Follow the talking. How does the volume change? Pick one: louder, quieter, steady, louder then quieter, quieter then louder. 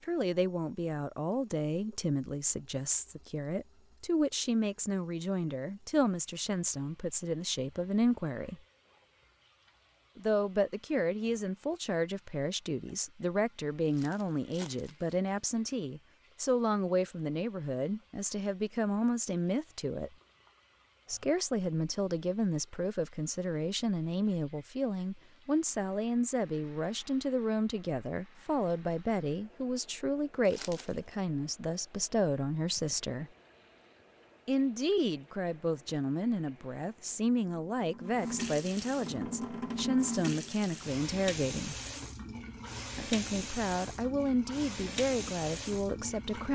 steady.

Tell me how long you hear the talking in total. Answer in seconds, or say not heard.
42 s.